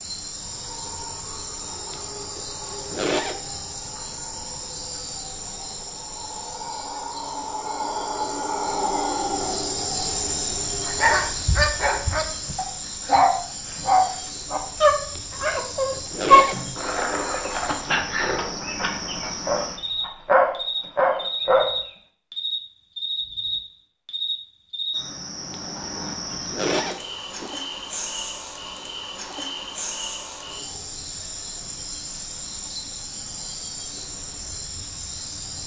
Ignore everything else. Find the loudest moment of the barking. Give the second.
16 s.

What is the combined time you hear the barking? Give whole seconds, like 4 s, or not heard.
11 s.